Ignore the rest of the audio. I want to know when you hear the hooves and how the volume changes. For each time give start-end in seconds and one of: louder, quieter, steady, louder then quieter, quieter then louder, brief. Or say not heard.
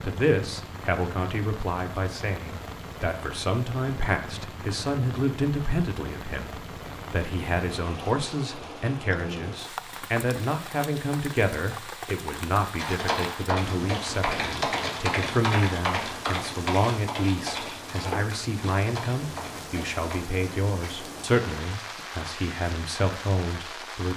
12.8-20.1 quieter.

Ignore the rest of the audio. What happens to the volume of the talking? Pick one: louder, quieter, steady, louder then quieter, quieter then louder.
steady.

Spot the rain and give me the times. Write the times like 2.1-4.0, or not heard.
0.0-24.1.